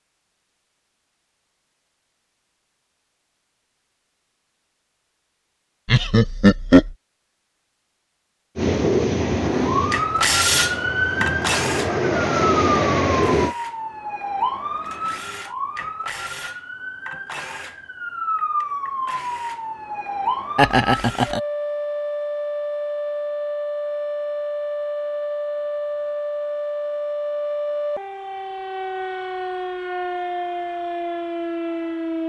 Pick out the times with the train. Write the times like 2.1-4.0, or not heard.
8.6-13.6.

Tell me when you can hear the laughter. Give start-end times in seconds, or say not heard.
5.8-6.9, 20.6-21.4.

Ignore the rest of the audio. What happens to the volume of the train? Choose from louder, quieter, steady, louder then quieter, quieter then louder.
quieter then louder.